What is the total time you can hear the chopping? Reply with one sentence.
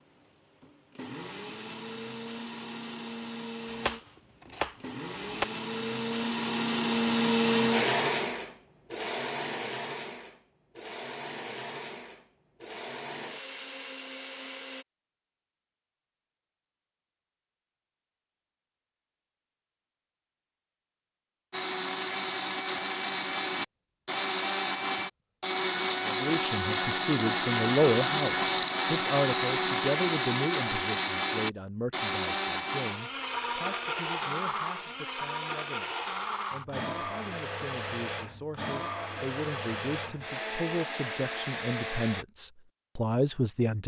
The chopping can be heard for 2 seconds in total.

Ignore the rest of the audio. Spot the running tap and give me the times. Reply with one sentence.
You can't hear the running tap here.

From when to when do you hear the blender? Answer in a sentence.
The blender can be heard from 0.0 to 14.8 s and from 21.5 to 42.2 s.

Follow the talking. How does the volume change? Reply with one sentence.
The loudness of the talking goes down, then up.